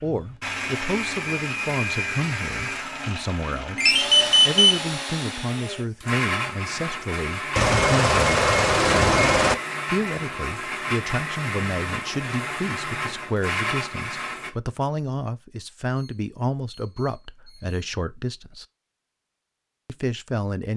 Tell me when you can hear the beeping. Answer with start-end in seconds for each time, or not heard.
3.8-4.8, 7.5-9.6, 15.9-17.8.